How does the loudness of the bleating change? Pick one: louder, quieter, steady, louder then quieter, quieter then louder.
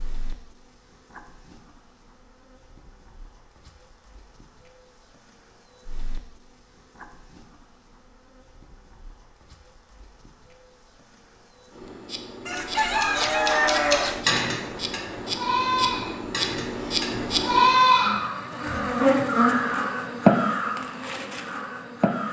quieter then louder.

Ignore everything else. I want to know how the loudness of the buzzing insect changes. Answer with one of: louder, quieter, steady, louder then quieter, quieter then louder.
louder.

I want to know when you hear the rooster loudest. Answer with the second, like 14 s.
13 s.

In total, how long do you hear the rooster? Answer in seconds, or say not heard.
2 s.